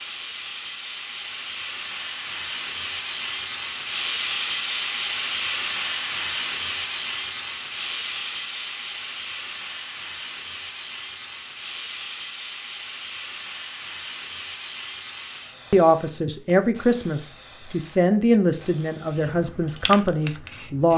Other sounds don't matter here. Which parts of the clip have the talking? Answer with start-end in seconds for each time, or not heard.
15.7-20.9.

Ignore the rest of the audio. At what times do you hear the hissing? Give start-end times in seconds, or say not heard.
0.0-20.9.